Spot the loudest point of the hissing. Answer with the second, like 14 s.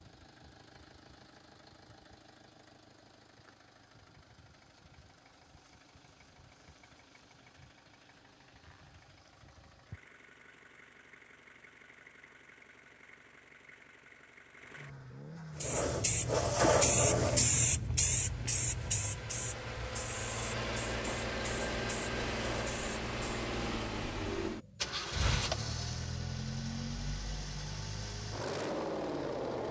17 s.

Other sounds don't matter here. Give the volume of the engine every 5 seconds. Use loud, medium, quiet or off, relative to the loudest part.
quiet, quiet, quiet, medium, loud, loud.